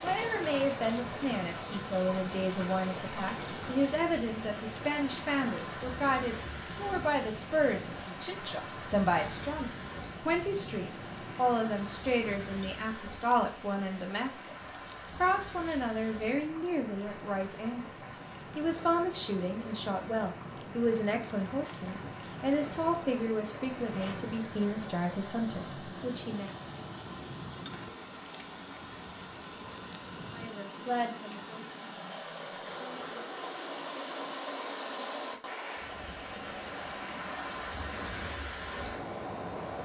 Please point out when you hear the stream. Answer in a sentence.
You can hear the stream from 0.0 to 39.8 s.